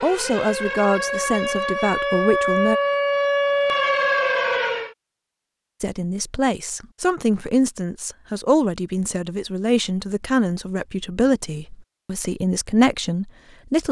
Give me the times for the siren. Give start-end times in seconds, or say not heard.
0.0-5.0.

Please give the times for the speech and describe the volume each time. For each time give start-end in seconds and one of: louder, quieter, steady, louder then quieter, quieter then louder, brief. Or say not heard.
0.0-2.8 brief
5.8-13.8 steady.